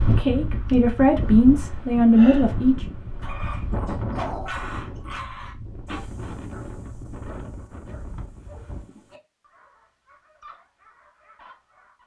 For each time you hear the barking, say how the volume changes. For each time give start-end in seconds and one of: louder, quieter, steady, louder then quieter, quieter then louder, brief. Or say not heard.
3.2-12.0 quieter.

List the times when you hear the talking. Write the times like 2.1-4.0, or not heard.
0.0-2.9.